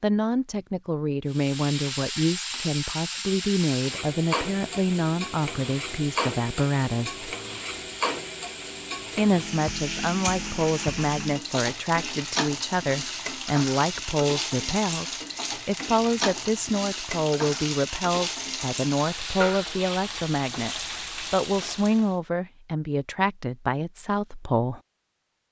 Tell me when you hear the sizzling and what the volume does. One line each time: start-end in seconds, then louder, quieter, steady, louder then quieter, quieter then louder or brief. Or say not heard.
1.3-22.1 steady.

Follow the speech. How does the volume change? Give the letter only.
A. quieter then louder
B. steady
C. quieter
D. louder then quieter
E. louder
B.